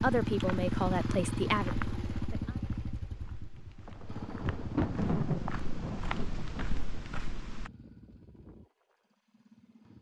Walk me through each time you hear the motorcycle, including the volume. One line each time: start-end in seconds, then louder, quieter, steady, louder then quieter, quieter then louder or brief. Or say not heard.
0.0-9.9 quieter.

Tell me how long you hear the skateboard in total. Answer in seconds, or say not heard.
not heard.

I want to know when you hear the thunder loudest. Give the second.
5 s.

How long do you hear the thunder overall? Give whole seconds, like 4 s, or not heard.
3 s.